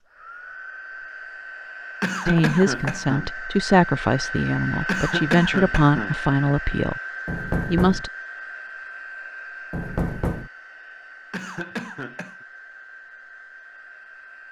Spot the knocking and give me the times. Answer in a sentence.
The knocking can be heard from 2.4 to 3.0 s, from 7.2 to 8.1 s and from 9.7 to 10.5 s.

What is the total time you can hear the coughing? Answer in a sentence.
The coughing can be heard for 4 seconds in total.